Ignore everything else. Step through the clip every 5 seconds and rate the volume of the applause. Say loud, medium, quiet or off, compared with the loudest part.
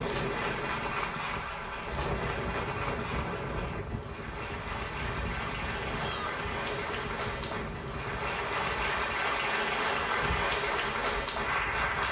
medium, loud, loud.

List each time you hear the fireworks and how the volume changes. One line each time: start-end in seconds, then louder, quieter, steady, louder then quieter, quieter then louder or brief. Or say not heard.
not heard.